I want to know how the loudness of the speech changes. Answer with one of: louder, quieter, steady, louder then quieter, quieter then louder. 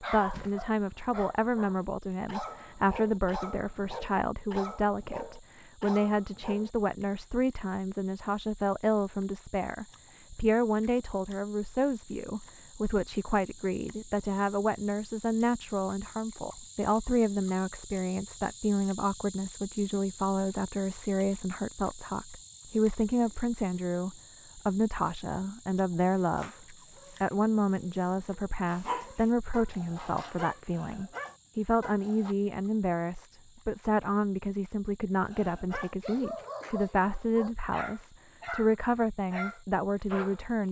steady.